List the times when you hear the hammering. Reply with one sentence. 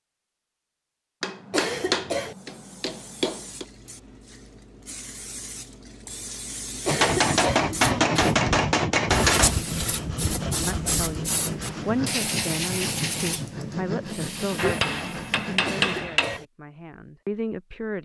The hammering can be heard from 1.2 to 3.6 s, from 6.8 to 9.6 s and from 14.6 to 16.4 s.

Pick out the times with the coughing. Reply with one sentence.
The coughing can be heard from 1.5 to 2.4 s, from 6.8 to 7.7 s and from 15.7 to 16.4 s.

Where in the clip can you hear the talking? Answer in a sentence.
The talking can be heard from 10.7 to 18.0 s.